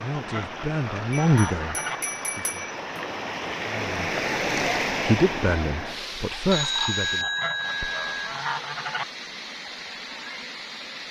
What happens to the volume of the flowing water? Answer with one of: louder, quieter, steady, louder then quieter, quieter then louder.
louder then quieter.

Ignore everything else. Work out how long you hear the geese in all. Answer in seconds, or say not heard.
4 s.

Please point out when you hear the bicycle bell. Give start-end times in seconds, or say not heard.
1.1-3.1, 6.5-8.3.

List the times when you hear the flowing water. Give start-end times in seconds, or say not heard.
0.0-11.0.